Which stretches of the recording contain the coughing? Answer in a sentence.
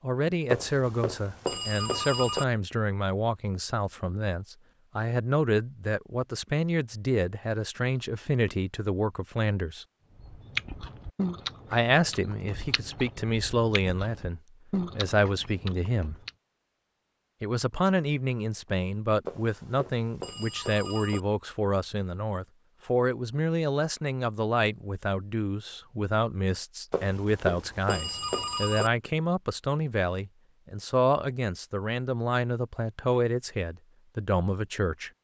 The coughing can't be heard in this clip.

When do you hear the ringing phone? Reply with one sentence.
The ringing phone can be heard from 0.5 to 2.5 s, from 19.2 to 21.2 s and from 26.9 to 28.9 s.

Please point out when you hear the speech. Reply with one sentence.
You can hear the speech from 0.0 to 9.8 s, from 11.7 to 16.1 s and from 17.4 to 35.1 s.